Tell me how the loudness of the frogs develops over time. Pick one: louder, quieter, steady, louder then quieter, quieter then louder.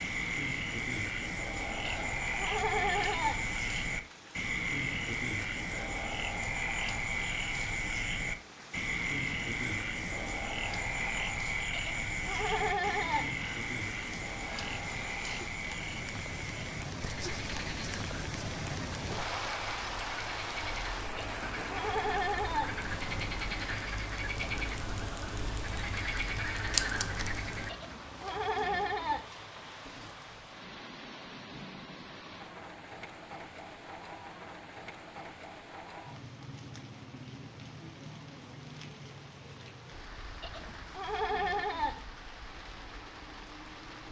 quieter then louder.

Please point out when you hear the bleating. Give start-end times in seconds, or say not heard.
1.9-3.5, 11.7-13.3, 21.1-22.8, 27.6-29.2, 40.4-42.0.